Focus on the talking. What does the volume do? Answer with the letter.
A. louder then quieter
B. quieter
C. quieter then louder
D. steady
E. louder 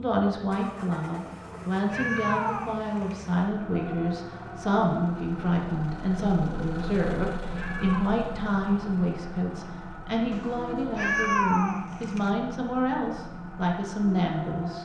D.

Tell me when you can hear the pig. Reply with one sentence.
The pig can't be heard in this clip.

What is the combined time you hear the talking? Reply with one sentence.
The talking can be heard for 15 seconds in total.